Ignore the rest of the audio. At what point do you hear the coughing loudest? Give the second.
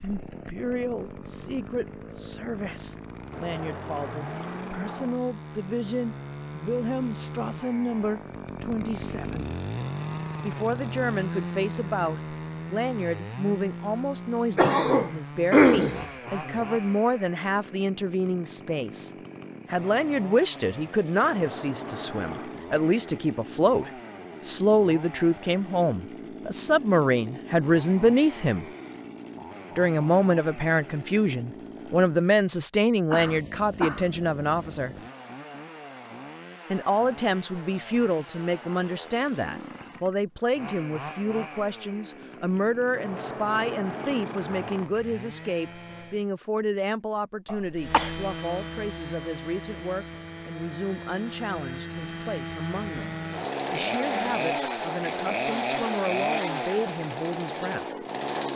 16 s.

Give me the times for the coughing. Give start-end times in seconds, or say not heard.
14.6-16.6, 33.1-34.1, 47.5-48.1.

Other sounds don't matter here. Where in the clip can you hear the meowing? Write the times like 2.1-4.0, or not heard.
3.3-5.2, 21.2-22.6, 43.0-44.9.